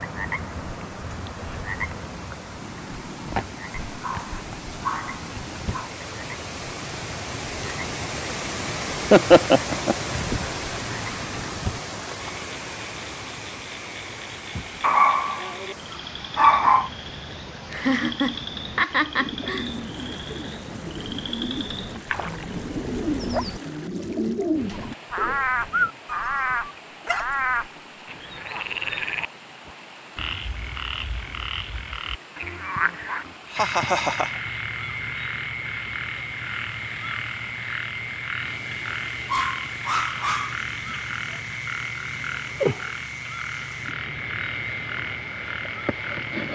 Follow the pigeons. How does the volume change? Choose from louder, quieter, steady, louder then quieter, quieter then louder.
louder.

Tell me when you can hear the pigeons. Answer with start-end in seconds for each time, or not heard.
19.1-25.9.